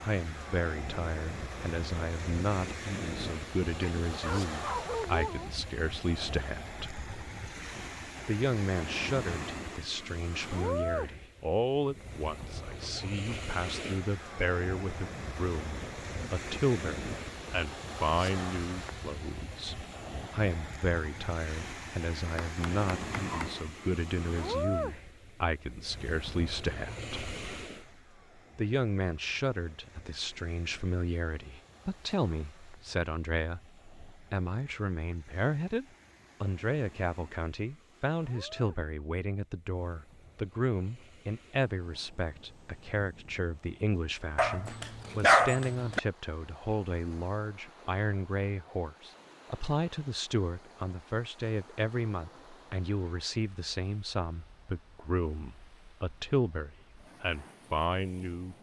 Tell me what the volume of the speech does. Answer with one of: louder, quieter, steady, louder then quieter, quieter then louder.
steady.